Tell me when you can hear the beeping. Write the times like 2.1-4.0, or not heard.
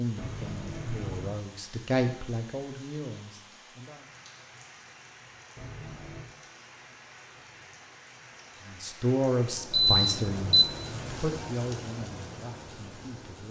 9.7-10.7.